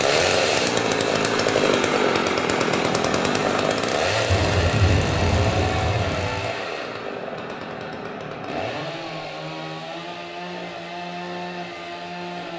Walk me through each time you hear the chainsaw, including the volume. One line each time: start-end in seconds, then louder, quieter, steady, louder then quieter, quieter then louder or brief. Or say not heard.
0.0-12.5 quieter.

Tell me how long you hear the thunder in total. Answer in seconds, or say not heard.
2 s.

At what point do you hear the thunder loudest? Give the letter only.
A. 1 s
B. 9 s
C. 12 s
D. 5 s
D.